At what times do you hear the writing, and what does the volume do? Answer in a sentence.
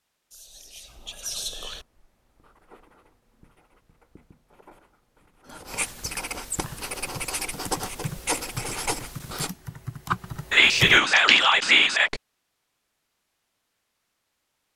You can hear the writing from 1.6 to 9.5 s, getting louder.